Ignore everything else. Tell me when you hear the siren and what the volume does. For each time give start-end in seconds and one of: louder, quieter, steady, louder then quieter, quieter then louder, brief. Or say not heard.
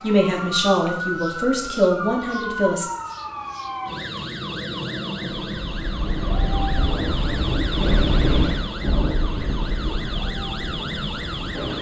0.0-11.7 steady.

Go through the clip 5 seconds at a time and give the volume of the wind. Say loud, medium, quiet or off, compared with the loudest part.
off, loud, medium.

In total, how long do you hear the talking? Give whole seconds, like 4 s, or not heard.
3 s.